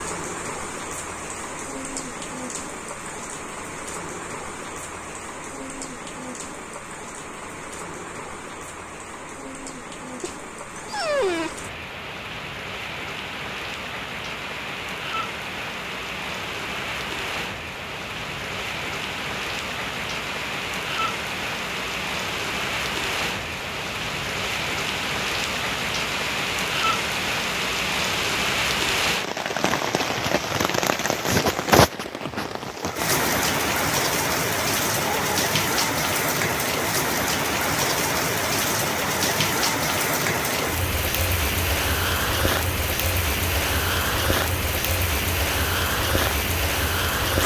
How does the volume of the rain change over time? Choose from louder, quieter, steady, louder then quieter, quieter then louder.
louder.